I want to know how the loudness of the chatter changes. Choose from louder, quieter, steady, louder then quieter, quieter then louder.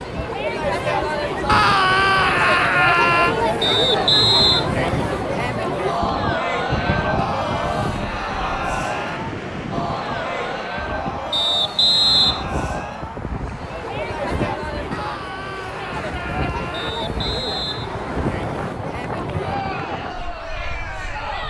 quieter.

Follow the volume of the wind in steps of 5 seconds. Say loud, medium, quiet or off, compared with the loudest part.
loud, loud, loud, loud, quiet.